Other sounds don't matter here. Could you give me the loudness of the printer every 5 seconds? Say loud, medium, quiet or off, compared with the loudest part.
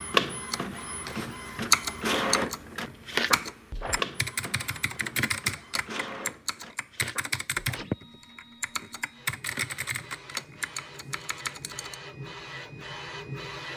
loud, quiet, medium.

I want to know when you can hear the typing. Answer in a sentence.
The typing can be heard from 0.5 to 11.9 s.